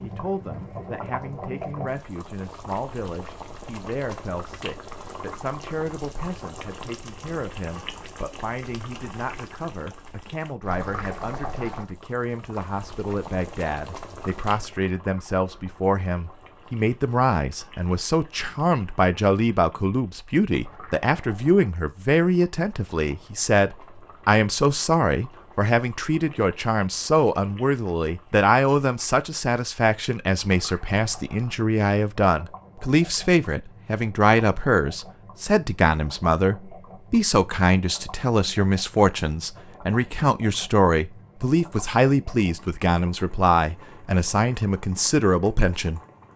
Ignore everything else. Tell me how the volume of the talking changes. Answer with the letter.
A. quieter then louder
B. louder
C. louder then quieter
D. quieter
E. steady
B.